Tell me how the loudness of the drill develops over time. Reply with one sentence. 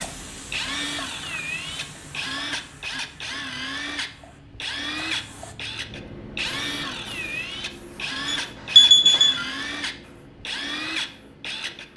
The loudness of the drill stays about the same.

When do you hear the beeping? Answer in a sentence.
The beeping can be heard from 8.2 to 9.4 s.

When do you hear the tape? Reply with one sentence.
You can't hear the tape here.